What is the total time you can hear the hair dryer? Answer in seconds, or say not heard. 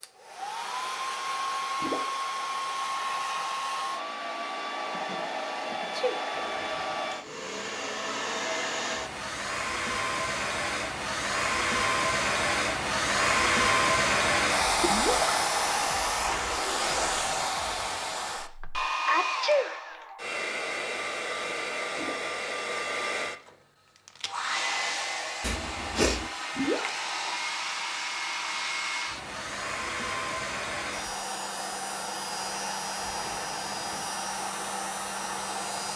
36 s.